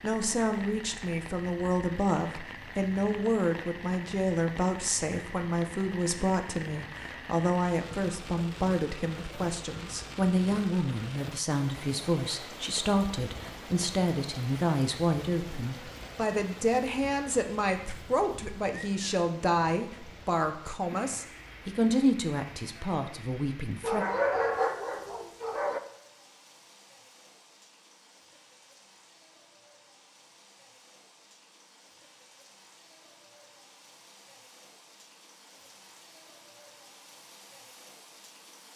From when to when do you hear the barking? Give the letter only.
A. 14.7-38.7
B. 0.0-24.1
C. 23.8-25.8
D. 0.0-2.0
C.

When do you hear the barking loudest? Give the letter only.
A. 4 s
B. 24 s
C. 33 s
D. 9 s
B.